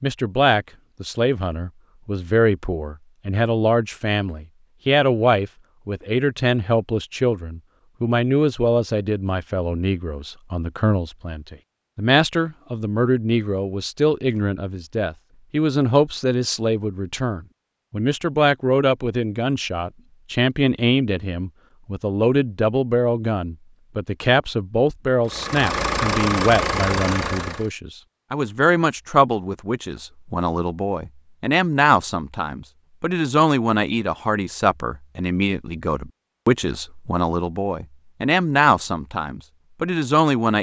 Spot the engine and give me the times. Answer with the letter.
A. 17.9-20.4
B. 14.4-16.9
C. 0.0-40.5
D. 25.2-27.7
D.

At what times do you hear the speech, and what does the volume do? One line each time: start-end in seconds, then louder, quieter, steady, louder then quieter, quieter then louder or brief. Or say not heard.
0.0-40.5 steady.